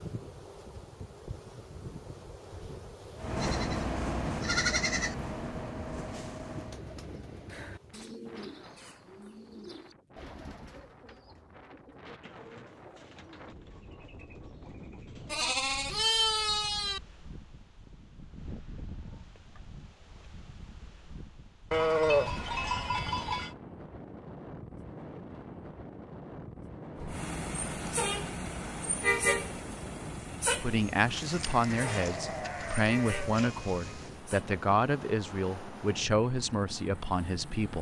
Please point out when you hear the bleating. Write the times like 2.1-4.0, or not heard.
3.4-5.2, 15.2-17.0, 21.7-23.6, 31.1-34.0.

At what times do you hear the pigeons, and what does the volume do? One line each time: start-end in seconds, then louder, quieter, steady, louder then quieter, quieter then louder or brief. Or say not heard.
6.5-15.4 quieter.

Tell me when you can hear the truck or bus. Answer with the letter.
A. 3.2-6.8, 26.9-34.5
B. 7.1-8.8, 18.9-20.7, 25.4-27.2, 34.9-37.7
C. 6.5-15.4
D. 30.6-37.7
A.